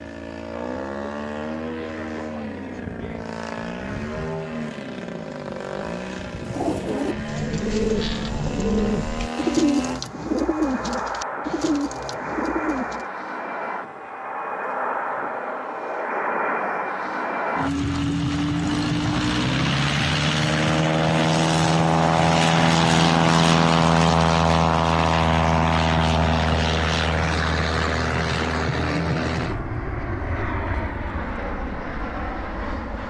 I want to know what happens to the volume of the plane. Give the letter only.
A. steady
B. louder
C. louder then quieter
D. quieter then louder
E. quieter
C.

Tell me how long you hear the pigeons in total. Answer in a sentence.
The pigeons can be heard for 7 seconds in total.